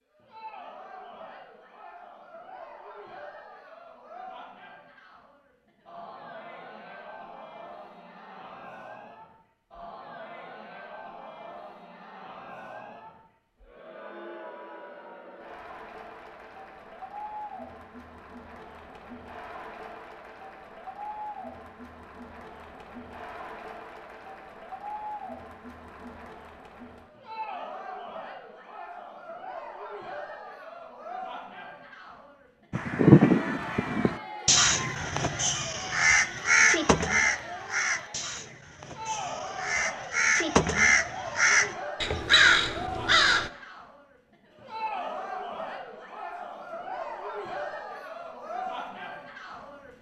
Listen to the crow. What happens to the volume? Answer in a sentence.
The loudness of the crow goes down, then up.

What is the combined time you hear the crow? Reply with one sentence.
You can hear the crow for 11 seconds altogether.